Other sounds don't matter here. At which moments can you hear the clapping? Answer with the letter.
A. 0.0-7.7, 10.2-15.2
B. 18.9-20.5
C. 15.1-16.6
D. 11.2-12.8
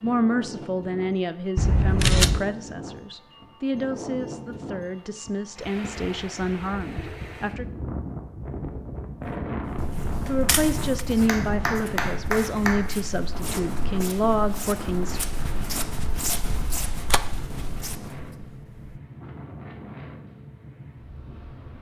D.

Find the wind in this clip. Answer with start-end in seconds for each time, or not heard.
0.0-21.7.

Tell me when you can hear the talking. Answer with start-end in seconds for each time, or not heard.
0.0-7.7, 10.2-15.2.